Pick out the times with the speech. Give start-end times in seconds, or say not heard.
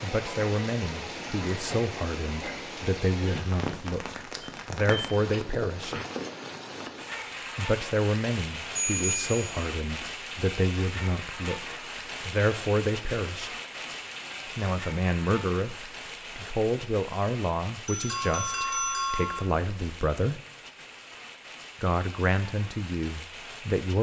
0.0-6.0, 7.5-13.6, 14.6-20.4, 21.8-23.9.